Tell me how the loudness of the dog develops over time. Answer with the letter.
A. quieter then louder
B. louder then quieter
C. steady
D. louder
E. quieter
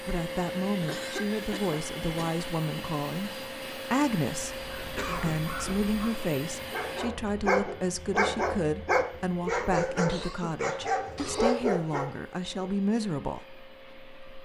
D.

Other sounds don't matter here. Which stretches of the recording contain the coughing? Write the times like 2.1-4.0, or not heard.
0.8-2.4, 5.0-5.5, 10.1-11.7.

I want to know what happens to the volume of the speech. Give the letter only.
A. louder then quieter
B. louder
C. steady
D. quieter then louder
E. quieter
C.